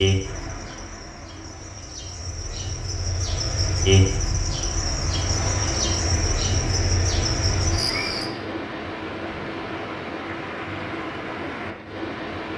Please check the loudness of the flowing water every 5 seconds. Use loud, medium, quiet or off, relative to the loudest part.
medium, loud, loud.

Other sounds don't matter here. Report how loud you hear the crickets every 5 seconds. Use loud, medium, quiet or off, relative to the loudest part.
loud, loud, off.